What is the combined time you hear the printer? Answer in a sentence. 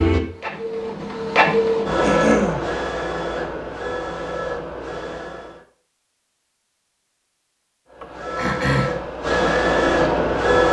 You can hear the printer for 8 seconds altogether.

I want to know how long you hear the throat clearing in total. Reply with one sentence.
You can hear the throat clearing for 2 seconds altogether.